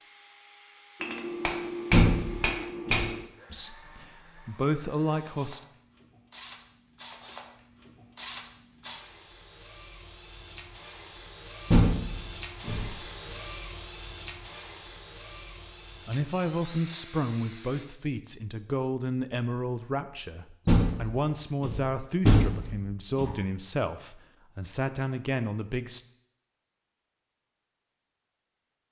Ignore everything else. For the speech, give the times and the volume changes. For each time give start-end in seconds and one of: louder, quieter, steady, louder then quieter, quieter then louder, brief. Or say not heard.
3.5-5.6 brief
16.1-26.0 steady.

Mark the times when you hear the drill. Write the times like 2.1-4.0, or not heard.
0.0-17.9.